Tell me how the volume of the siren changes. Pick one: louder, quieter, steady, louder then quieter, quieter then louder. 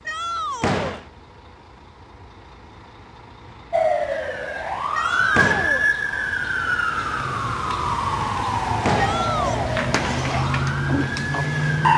steady.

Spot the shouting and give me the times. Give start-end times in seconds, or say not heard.
0.1-1.0, 4.9-5.9, 8.9-9.8.